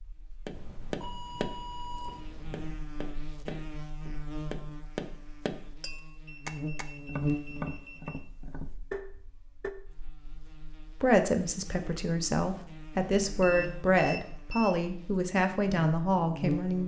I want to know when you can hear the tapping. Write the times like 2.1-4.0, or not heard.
0.5-9.7.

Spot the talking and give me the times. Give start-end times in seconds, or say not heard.
11.0-16.8.